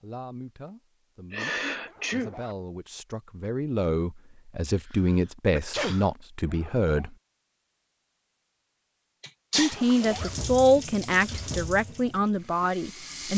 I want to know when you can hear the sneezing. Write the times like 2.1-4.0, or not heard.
1.3-2.3, 4.8-6.0, 9.2-9.8.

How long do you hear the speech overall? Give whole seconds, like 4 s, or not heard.
11 s.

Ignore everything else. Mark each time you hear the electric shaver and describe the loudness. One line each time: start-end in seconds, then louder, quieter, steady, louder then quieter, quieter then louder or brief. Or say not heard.
not heard.